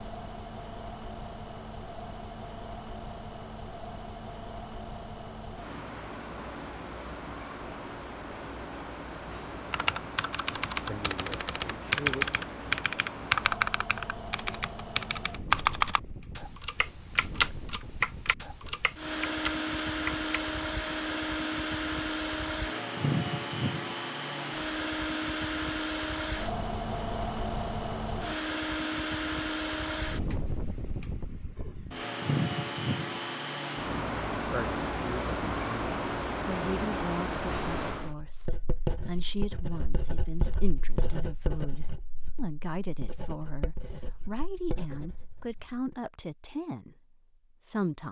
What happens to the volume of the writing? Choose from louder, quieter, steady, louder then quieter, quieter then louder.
quieter.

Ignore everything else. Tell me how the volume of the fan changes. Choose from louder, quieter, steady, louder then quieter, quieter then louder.
louder.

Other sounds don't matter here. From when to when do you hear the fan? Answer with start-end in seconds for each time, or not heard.
0.0-38.1.